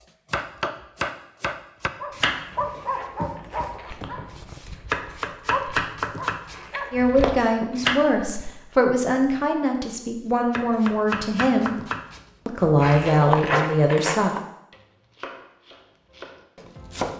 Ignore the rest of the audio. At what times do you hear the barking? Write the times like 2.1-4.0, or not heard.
1.9-8.6.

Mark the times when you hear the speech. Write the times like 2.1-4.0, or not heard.
6.9-11.7, 12.4-14.3.